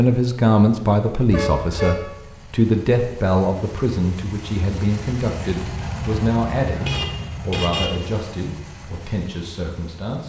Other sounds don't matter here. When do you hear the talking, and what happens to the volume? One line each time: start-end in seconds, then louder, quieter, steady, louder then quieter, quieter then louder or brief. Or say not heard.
0.0-10.2 quieter.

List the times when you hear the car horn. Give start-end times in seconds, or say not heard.
1.2-2.1, 6.8-8.0.